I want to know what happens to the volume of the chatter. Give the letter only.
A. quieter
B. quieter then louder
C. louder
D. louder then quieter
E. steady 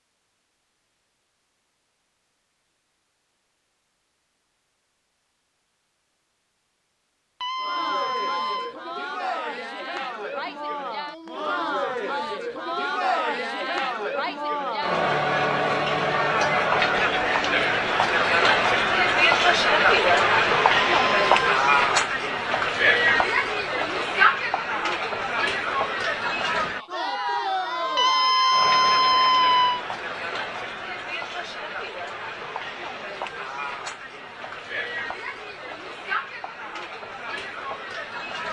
D.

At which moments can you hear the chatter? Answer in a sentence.
You can hear the chatter from 7.5 to 38.4 s.